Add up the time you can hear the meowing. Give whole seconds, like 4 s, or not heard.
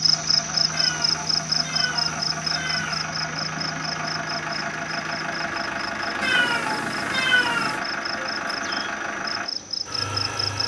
4 s.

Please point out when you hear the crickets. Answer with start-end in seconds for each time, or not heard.
0.0-10.6.